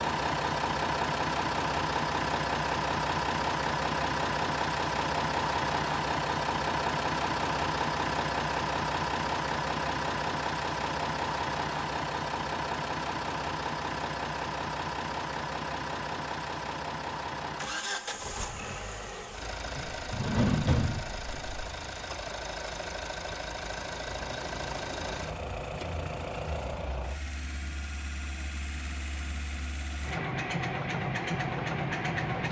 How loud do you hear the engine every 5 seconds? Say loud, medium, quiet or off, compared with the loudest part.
loud, loud, loud, medium, medium, medium, loud.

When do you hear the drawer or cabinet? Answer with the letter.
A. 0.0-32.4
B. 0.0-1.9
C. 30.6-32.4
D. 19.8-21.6
D.